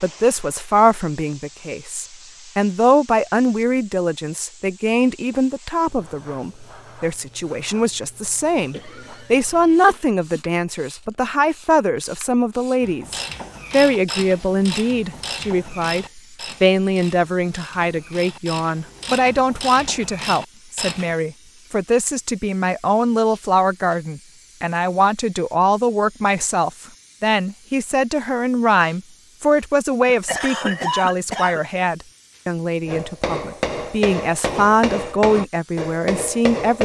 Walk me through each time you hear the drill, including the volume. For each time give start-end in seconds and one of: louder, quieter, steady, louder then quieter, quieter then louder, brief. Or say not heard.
not heard.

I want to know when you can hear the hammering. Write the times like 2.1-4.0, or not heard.
32.9-36.7.